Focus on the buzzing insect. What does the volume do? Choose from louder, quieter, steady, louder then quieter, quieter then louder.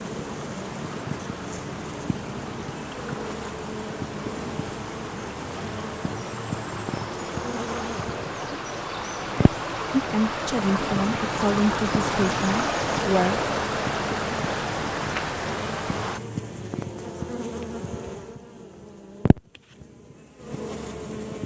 steady.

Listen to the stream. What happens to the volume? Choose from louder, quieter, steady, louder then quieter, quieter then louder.
louder.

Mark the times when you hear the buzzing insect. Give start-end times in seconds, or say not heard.
0.0-21.4.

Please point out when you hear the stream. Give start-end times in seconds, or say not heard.
0.0-16.2.